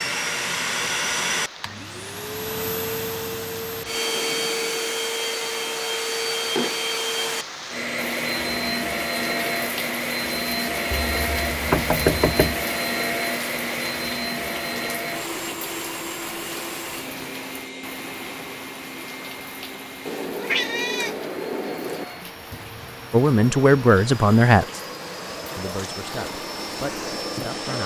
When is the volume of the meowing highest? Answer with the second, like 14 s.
21 s.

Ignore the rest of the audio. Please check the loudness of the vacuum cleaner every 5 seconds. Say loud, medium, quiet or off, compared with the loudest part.
loud, loud, loud, medium, quiet, medium.